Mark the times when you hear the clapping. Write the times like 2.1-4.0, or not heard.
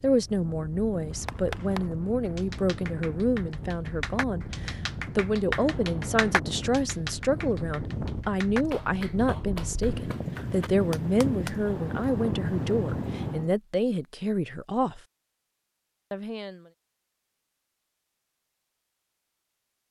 1.1-11.6.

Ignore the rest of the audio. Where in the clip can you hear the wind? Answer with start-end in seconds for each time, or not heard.
0.0-13.6.